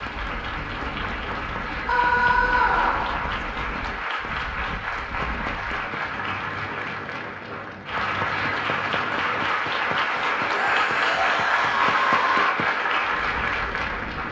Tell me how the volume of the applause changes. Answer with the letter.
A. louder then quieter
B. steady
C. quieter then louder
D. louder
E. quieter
D.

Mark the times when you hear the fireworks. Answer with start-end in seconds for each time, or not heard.
not heard.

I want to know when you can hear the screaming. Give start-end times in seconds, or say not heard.
1.9-3.3, 10.5-12.6.